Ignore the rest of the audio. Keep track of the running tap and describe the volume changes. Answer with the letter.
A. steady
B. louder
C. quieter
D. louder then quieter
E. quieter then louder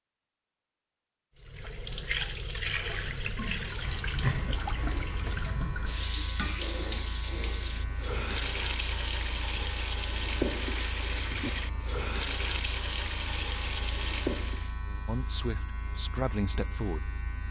A.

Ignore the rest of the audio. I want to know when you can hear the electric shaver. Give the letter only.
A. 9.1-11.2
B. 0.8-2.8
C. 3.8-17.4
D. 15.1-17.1
C.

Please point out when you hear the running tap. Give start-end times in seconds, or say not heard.
1.4-14.8.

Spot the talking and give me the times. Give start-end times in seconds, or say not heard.
15.1-17.1.